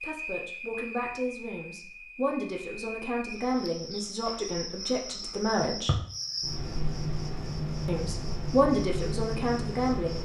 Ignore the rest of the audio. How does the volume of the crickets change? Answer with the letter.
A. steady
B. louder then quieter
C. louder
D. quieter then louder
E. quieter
C.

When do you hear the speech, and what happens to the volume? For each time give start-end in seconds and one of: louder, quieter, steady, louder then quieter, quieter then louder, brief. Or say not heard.
0.0-6.0 steady
7.8-10.1 brief.